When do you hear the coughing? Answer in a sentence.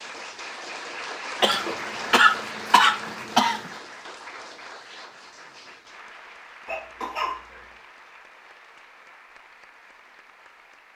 The coughing can be heard from 1.4 to 3.7 s and from 6.7 to 7.7 s.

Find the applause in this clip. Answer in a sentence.
The applause can be heard from 0.0 to 10.9 s.